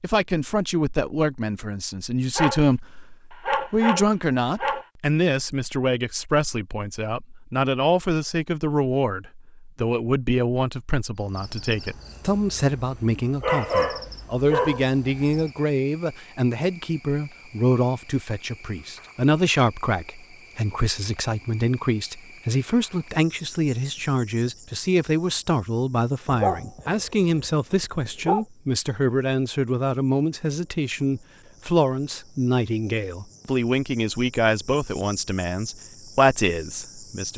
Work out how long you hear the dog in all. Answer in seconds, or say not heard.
6 s.